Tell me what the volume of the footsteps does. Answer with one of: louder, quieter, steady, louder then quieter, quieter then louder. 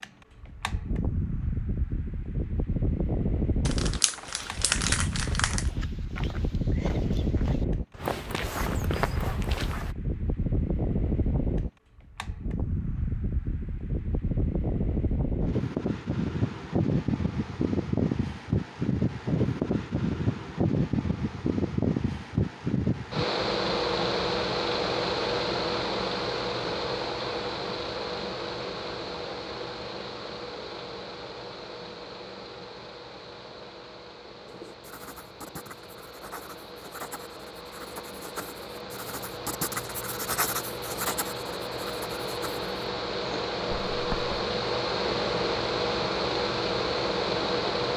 louder.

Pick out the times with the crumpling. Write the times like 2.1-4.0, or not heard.
3.6-5.7.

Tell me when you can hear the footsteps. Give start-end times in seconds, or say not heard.
4.0-9.9.